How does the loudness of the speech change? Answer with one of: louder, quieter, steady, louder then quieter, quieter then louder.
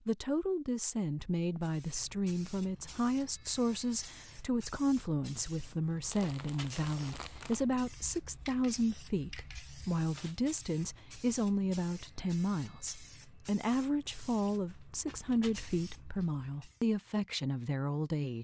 steady.